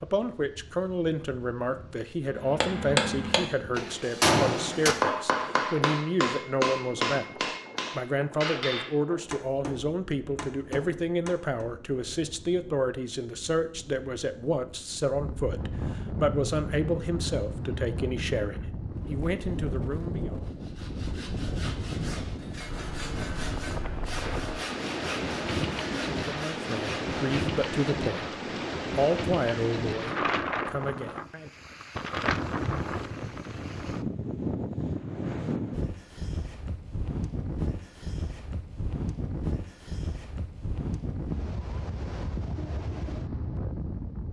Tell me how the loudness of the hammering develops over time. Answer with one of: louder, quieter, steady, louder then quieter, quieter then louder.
quieter.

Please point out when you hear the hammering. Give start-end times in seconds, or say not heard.
2.4-11.7.